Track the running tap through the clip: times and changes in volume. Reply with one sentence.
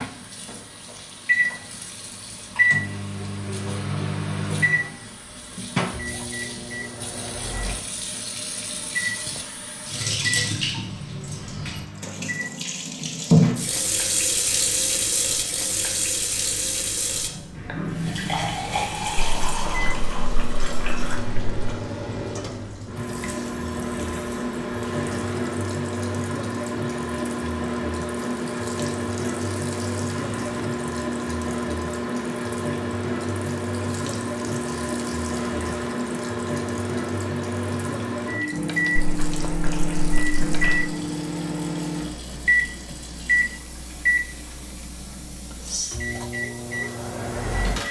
The running tap can be heard from 0.0 to 47.8 s, getting louder then quieter.